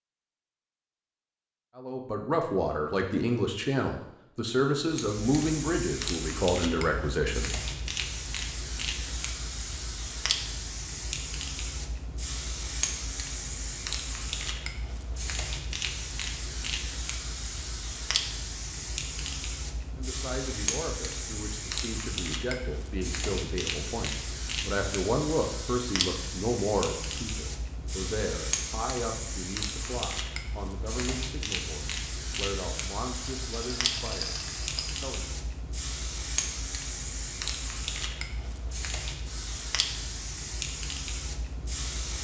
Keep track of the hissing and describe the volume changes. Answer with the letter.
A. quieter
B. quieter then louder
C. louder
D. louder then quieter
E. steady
E.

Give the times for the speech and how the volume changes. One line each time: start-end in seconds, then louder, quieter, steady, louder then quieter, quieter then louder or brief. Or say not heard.
1.8-7.5 steady
19.9-34.4 louder then quieter
35.0-35.4 brief.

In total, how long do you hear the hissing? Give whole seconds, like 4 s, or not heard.
37 s.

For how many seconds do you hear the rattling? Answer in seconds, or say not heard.
2 s.